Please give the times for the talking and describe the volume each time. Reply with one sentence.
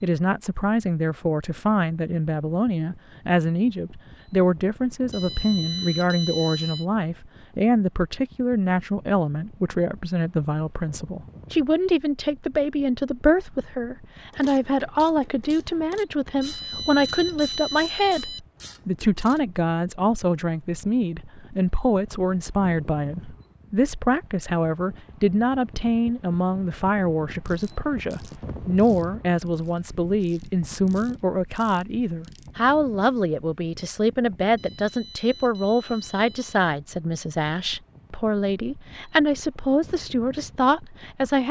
The talking can be heard from 0.0 to 41.4 s, at a steady volume.